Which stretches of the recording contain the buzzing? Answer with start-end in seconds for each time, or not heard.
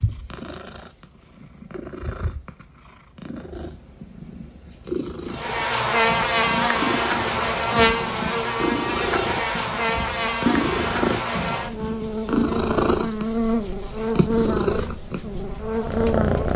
5.3-16.5.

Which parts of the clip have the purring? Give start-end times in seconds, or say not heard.
0.0-16.5.